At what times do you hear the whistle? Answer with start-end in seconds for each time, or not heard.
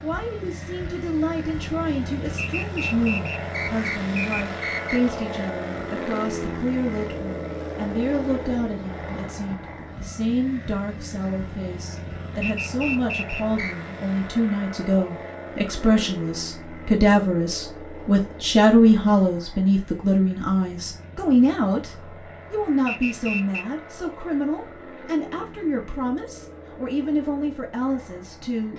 2.4-5.1, 12.4-13.8, 22.9-23.6.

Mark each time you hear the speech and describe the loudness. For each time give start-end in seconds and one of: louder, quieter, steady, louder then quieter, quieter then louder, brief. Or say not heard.
0.0-28.7 louder then quieter.